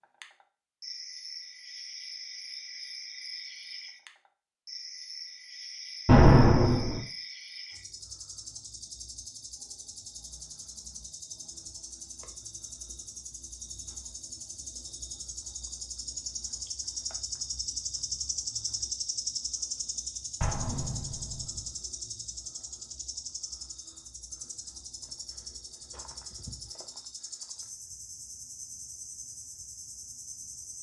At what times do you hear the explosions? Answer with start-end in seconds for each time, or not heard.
6.0-7.0, 20.4-21.4.